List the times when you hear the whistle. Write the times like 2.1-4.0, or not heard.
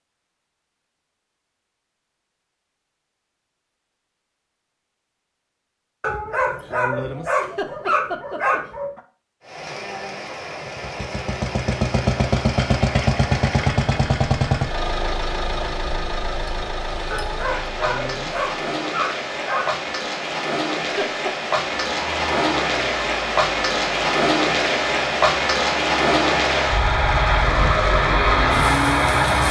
not heard.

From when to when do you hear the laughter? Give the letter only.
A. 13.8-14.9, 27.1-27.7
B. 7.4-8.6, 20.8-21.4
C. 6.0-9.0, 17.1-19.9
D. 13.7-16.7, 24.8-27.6
B.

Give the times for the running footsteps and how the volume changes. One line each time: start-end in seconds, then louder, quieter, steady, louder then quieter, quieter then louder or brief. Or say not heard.
not heard.